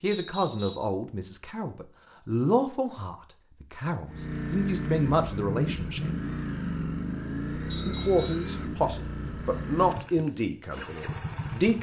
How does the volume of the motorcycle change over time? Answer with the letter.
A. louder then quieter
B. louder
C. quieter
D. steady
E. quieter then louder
C.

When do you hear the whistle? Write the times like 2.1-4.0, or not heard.
0.1-0.9, 7.7-8.6.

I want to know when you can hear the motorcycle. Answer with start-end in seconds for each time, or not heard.
4.0-11.7.